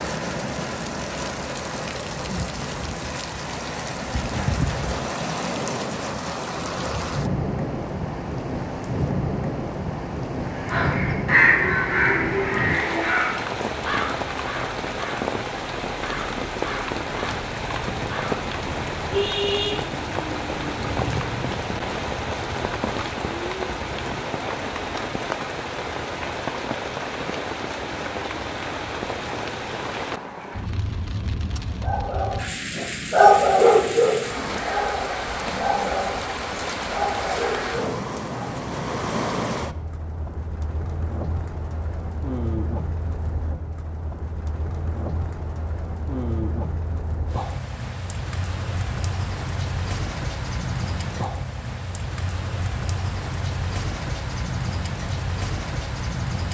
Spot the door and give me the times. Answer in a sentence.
The door can't be heard in this clip.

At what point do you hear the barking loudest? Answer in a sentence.
The loudest moment of the barking is at 33 seconds.